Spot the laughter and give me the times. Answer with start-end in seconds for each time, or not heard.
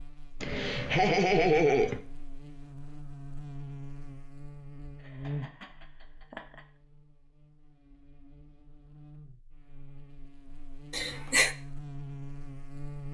0.4-2.0, 5.0-6.6, 10.9-11.6.